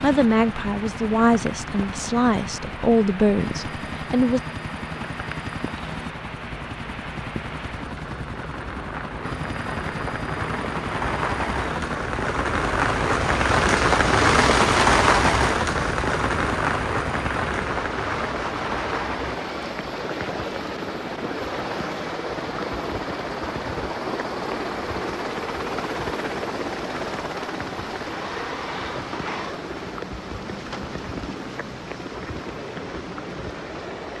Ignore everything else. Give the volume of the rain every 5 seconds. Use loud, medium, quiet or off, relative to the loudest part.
quiet, quiet, loud, loud, quiet, quiet, quiet.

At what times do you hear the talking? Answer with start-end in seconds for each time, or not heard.
0.0-4.4.